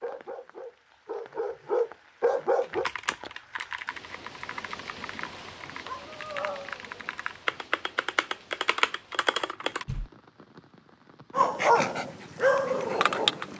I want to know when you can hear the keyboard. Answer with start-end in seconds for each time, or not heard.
2.6-10.1.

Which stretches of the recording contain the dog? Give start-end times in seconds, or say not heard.
0.0-2.9, 5.7-7.0, 11.3-13.5.